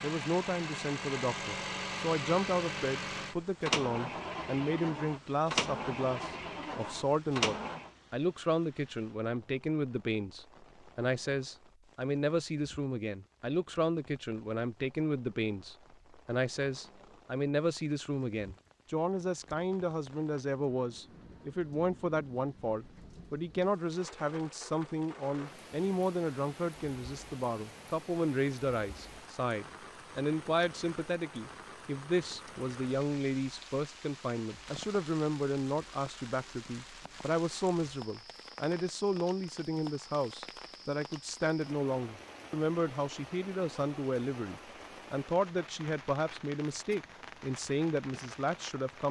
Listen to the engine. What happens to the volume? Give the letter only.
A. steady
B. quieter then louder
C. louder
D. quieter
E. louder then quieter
A.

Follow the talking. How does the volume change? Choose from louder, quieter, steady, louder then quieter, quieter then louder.
steady.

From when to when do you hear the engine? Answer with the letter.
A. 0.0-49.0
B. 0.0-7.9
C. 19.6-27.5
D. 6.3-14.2
B.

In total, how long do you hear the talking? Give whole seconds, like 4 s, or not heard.
49 s.